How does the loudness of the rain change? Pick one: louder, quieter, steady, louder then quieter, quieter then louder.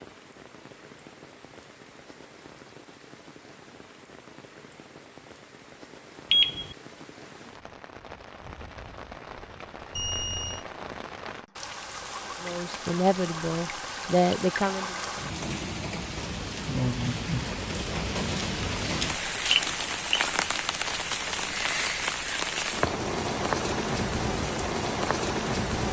louder.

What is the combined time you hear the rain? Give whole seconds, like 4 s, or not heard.
26 s.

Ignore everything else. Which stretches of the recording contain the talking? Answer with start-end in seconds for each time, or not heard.
12.4-14.9.